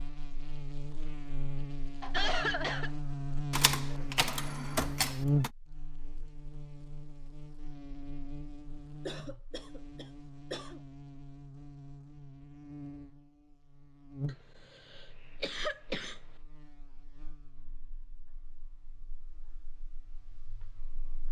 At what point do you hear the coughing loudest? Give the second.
2 s.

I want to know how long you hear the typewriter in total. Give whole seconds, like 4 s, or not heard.
2 s.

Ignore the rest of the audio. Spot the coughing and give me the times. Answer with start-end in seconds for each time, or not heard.
2.0-2.9, 9.1-10.8, 14.2-16.2.